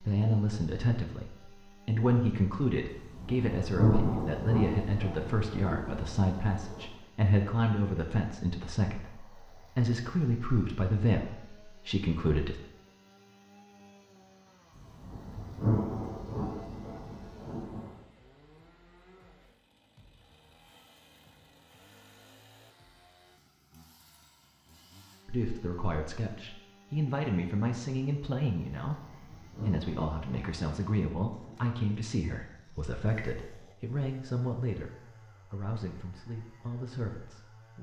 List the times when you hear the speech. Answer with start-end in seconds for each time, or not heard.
0.0-12.6, 25.2-29.0, 29.6-37.7.